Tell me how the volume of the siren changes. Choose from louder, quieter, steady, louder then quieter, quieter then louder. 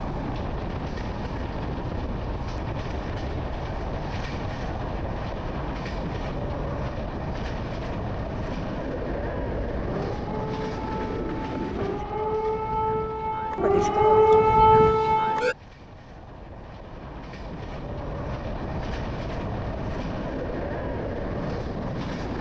louder.